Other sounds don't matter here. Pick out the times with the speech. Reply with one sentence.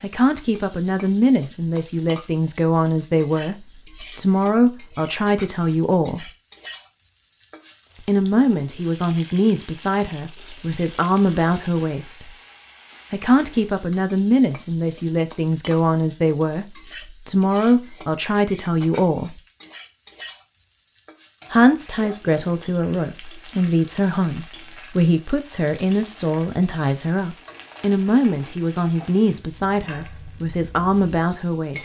The speech can be heard from 0.0 to 6.3 s, from 8.0 to 12.3 s, from 13.1 to 19.4 s and from 21.5 to 31.8 s.